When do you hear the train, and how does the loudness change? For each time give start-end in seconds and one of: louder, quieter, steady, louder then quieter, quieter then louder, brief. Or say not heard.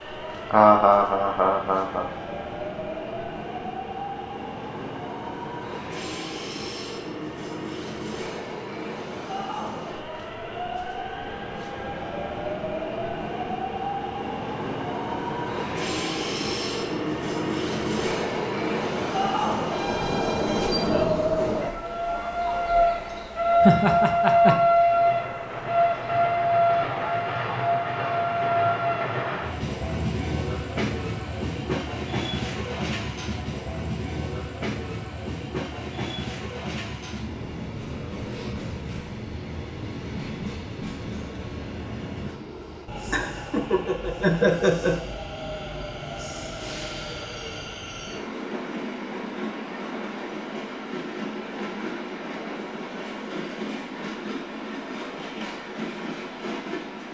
0.0-57.0 louder then quieter.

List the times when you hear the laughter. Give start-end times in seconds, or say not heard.
0.5-2.0, 23.6-24.6, 43.1-45.0.